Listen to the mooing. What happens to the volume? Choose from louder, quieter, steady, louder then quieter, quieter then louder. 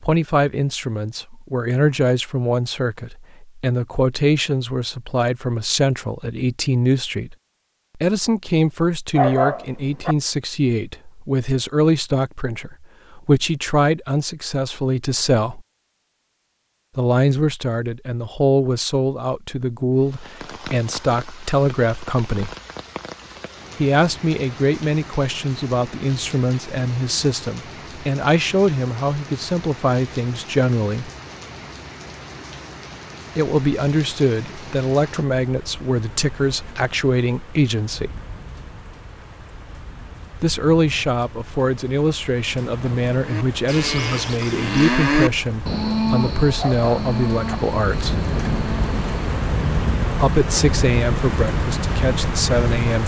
louder then quieter.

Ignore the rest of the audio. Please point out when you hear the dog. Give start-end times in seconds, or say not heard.
9.2-10.2, 46.5-47.5.